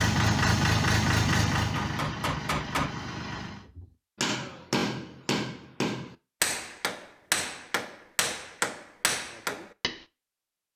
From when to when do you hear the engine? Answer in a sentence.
The engine can be heard from 0.0 to 3.6 s.